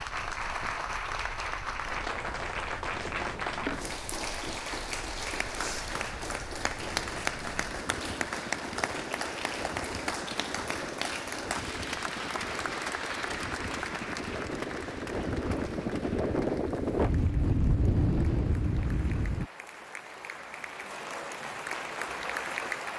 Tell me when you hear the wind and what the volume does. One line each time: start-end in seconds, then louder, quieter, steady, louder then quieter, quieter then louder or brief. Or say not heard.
0.0-19.5 louder.